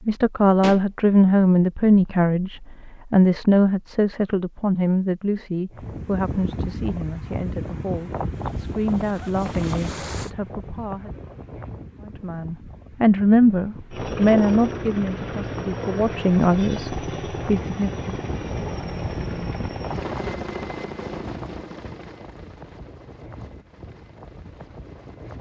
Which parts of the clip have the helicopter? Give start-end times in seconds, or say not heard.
8.3-10.3, 13.9-25.3.